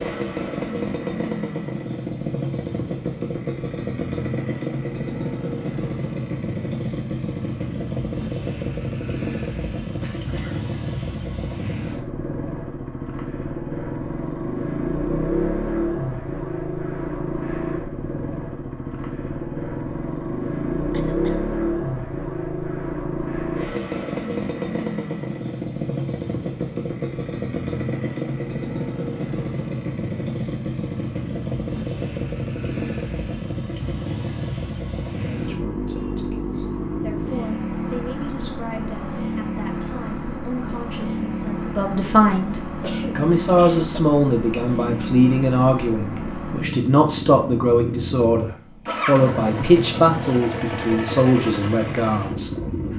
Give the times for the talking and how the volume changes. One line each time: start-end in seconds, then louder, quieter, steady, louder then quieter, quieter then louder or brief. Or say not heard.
35.1-52.5 louder.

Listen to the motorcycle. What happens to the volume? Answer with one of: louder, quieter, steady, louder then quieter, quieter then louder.
steady.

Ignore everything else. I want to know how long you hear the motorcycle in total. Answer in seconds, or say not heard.
53 s.